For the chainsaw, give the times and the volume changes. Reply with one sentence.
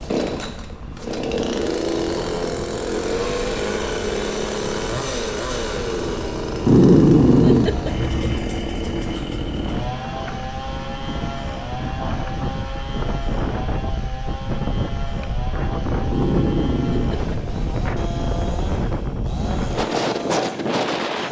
You can hear the chainsaw from 0.0 to 21.2 s, getting quieter.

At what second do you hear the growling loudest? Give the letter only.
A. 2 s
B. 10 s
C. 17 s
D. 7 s
D.